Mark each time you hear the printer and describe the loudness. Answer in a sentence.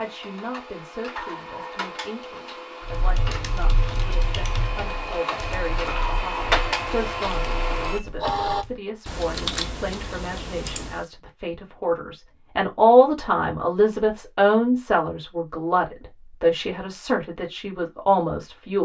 You can hear the printer from 0.0 to 8.7 s, getting louder.